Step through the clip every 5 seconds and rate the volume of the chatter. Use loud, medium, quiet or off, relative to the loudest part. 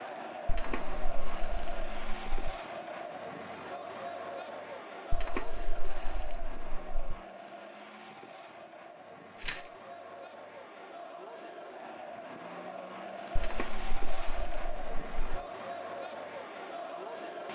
loud, medium, loud, loud.